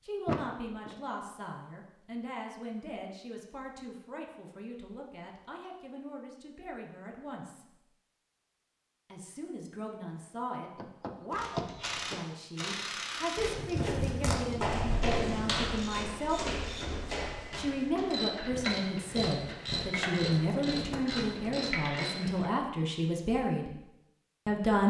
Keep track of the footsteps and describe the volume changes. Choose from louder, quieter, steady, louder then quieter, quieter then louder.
quieter.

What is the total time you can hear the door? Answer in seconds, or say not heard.
3 s.